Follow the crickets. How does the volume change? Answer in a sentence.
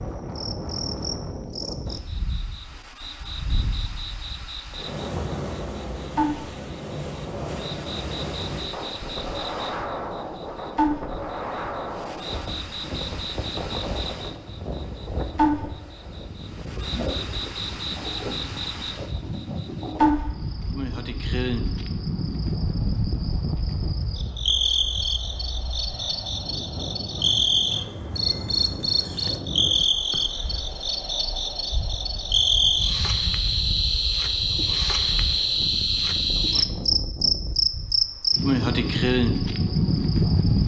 The volume of the crickets goes up.